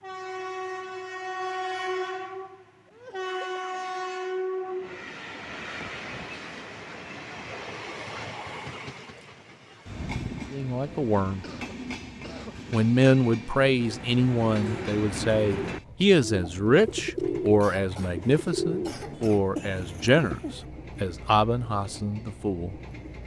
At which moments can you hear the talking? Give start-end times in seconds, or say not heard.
10.5-11.4, 12.7-22.8.